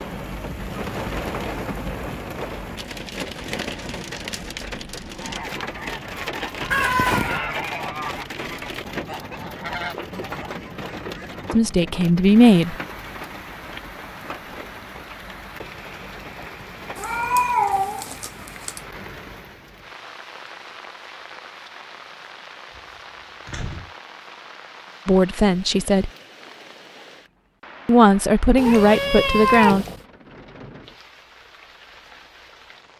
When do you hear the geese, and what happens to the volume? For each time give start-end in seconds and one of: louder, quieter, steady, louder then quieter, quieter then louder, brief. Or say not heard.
5.0-11.4 louder then quieter.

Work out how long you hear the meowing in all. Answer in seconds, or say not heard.
4 s.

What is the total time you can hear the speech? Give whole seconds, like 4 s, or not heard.
4 s.